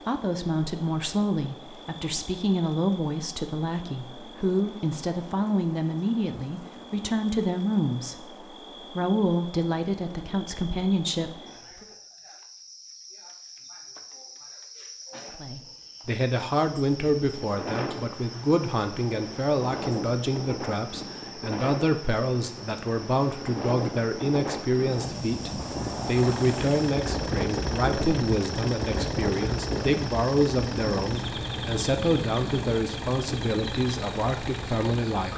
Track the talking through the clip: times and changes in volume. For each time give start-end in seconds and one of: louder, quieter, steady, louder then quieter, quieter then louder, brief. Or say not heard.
0.1-11.8 steady
15.3-35.3 steady.